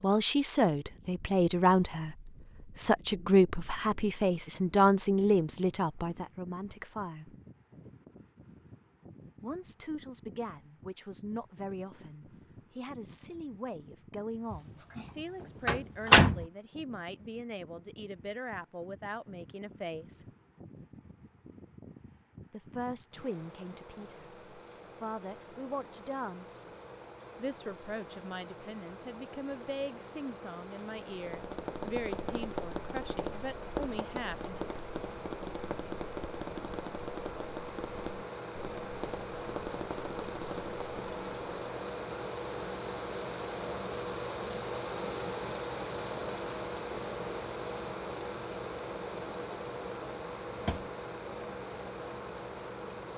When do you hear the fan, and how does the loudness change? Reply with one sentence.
The fan can be heard from 0.0 to 53.1 s, getting louder.